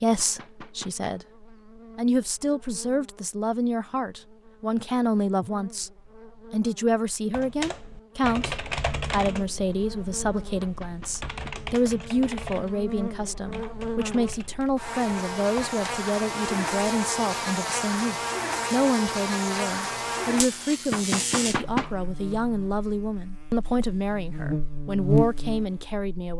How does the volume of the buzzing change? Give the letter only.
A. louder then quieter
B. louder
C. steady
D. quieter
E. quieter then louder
B.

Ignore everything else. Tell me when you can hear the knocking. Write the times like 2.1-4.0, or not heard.
0.1-1.1, 10.6-11.6, 20.9-22.4.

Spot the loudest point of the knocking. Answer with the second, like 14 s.
22 s.